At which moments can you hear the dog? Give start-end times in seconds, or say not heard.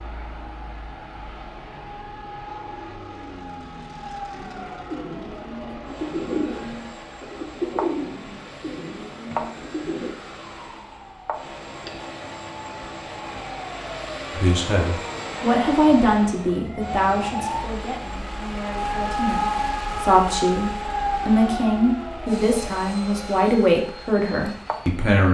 not heard.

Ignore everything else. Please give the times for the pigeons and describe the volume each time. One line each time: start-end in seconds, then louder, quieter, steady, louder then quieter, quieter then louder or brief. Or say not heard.
4.3-10.2 louder then quieter.